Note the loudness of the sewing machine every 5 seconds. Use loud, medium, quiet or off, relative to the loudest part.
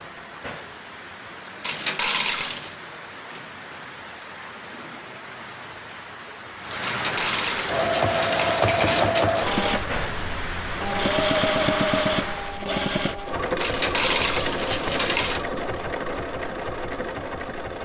off, loud, loud, medium.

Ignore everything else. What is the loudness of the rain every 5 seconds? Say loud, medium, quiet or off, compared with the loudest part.
medium, loud, loud, off.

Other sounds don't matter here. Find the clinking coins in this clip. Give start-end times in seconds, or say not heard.
1.6-2.8, 6.8-9.2, 13.6-15.4.